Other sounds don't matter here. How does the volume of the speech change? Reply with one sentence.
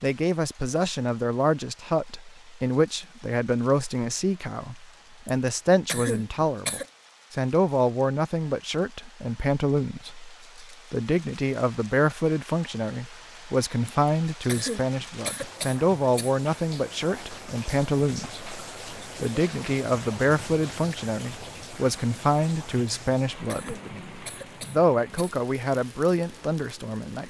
The volume of the speech stays about the same.